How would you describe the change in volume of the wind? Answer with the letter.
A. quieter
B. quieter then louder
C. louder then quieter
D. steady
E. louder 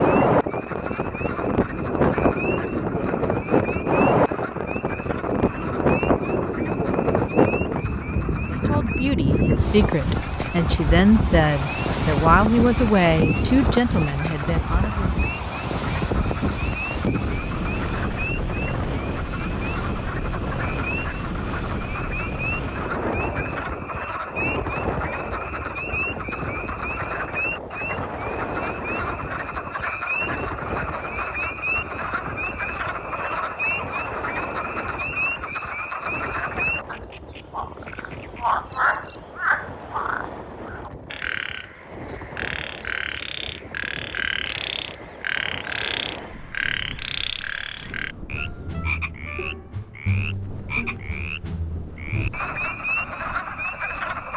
A.